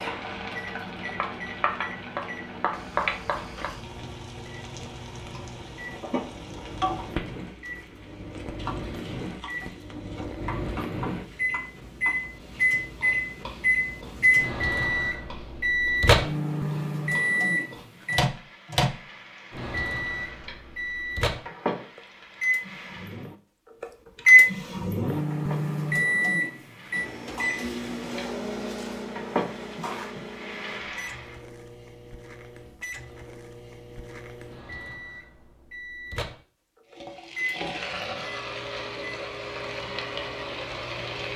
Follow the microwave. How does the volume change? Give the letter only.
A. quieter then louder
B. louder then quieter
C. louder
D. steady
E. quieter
B.